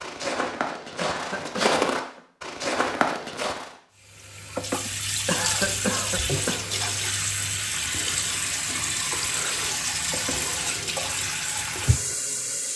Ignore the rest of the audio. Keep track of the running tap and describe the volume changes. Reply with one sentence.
The loudness of the running tap stays about the same.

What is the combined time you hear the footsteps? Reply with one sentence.
You can hear the footsteps for 4 seconds altogether.